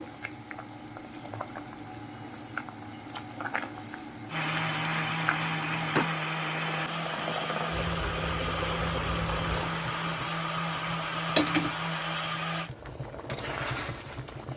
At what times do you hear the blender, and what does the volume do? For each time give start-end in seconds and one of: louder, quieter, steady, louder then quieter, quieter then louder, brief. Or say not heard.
4.2-12.7 steady.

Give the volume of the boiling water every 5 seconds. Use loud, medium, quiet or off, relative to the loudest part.
medium, loud, loud.